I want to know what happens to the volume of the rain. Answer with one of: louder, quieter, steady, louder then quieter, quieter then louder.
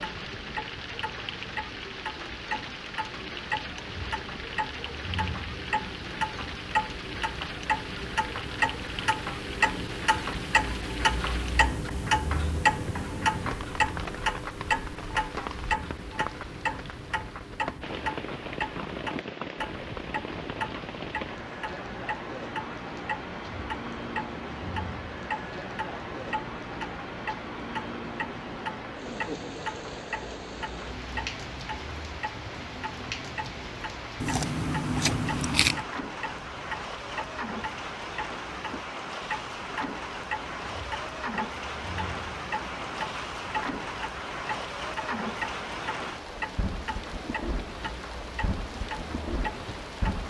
steady.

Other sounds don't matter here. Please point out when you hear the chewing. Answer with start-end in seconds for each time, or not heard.
34.2-35.9.